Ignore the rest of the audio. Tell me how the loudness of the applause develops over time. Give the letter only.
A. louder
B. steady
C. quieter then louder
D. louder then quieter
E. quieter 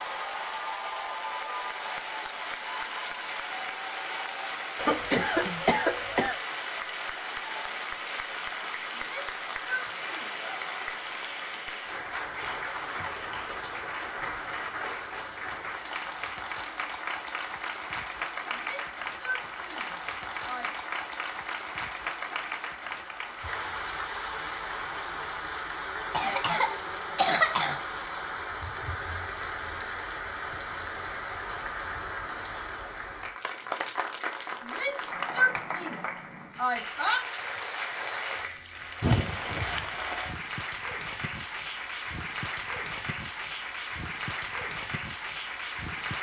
B.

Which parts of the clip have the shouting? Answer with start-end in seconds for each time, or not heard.
8.9-10.3, 18.5-20.7, 34.6-37.2.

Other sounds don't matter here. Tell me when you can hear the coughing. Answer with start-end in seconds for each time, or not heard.
4.8-6.3, 26.1-27.8, 39.0-39.6.